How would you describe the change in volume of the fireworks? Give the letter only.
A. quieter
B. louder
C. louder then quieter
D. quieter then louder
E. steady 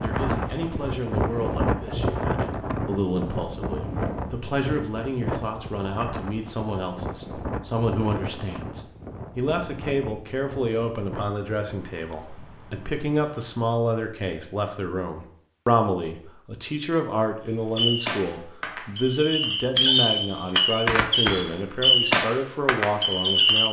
C.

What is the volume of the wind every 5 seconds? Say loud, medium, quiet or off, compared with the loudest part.
loud, medium, quiet, off, off.